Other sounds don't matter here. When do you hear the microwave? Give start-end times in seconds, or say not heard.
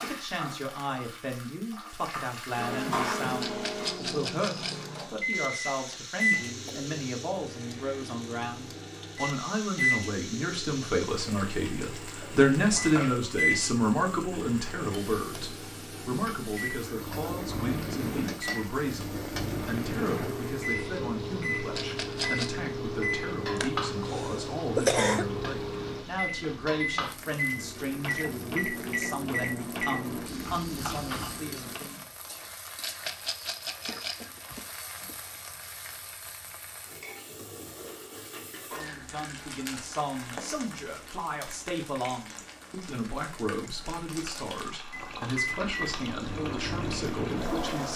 2.5-31.8, 44.9-47.9.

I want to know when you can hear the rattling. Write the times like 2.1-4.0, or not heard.
3.4-4.8, 21.8-22.5, 32.8-34.2.